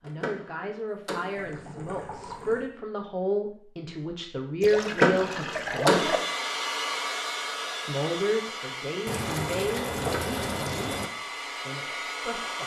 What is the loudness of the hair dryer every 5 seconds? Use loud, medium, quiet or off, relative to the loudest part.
off, loud, loud.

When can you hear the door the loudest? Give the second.
5 s.